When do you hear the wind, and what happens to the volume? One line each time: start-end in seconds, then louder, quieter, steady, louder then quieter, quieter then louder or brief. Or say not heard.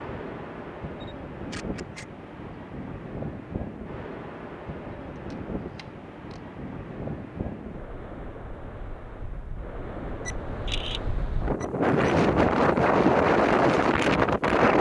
0.0-14.7 louder.